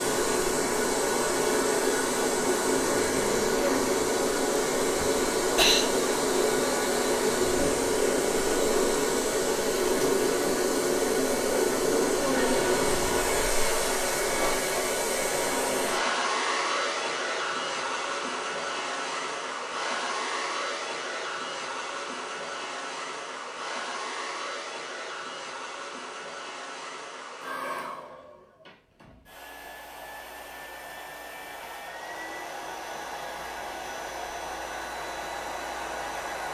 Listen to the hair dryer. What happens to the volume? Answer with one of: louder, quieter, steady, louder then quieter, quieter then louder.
quieter.